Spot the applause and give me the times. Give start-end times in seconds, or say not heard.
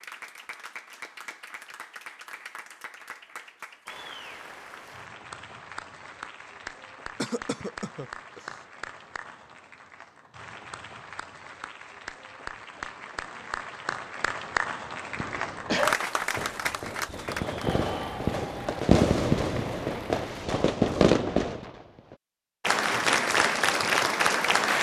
0.0-20.4, 22.6-24.7.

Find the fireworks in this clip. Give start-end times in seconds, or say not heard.
15.1-22.2.